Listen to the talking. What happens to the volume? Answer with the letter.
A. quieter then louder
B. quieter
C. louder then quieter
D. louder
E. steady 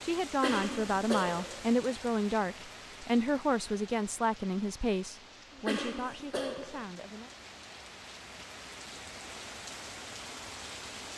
B.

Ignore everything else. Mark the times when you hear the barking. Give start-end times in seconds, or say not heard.
not heard.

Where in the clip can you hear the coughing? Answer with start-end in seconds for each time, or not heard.
0.4-1.6, 5.7-6.8.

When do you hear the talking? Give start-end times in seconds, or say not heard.
0.0-7.3.